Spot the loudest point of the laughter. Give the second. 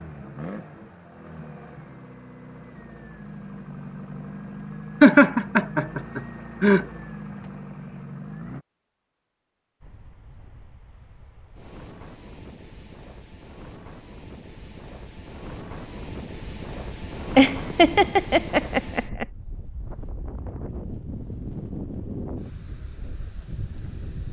5 s.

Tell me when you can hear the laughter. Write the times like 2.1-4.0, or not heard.
5.0-6.8, 17.4-19.2.